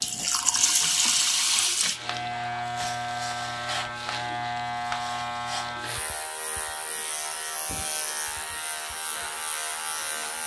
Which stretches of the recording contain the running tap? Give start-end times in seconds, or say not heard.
0.0-3.0.